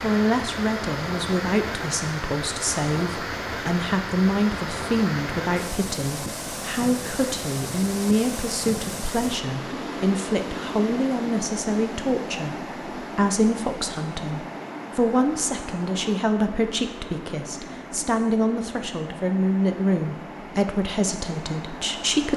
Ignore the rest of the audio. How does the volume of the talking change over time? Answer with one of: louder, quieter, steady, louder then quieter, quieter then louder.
steady.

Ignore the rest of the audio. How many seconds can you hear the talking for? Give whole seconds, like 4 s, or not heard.
22 s.